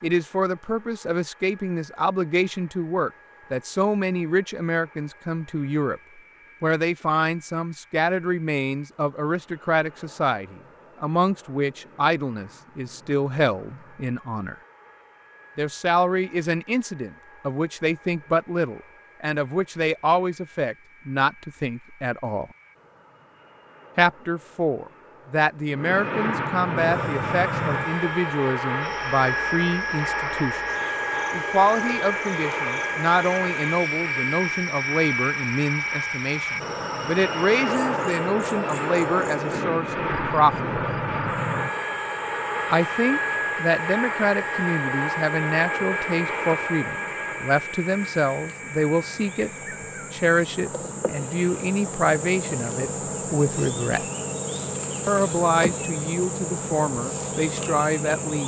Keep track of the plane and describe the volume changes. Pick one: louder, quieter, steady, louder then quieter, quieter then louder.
louder.